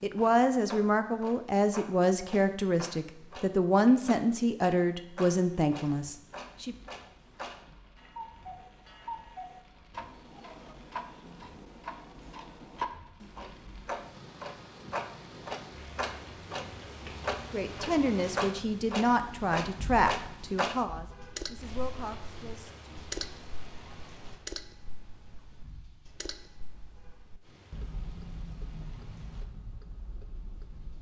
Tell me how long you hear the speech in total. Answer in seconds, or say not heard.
12 s.